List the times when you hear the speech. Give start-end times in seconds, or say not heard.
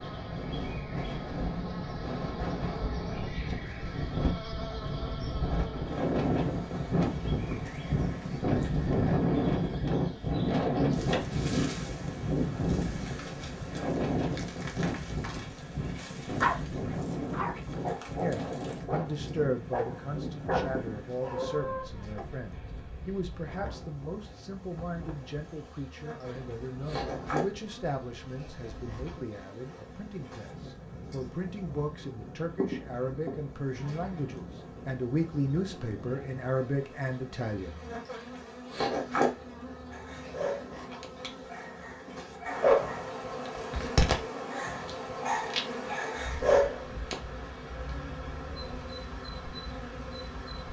18.2-37.8.